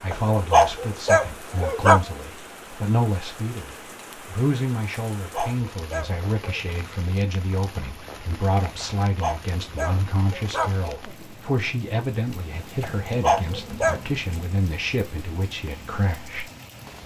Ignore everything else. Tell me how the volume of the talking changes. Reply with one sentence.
The volume of the talking stays about the same.